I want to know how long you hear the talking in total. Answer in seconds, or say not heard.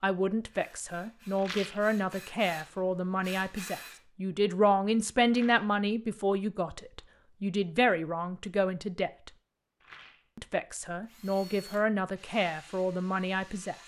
13 s.